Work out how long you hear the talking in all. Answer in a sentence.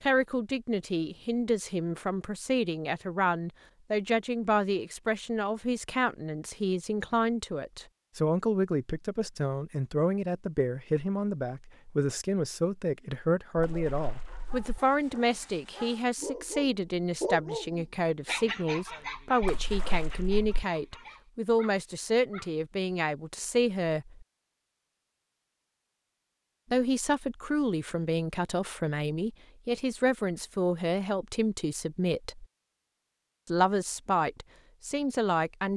You can hear the talking for 32 seconds altogether.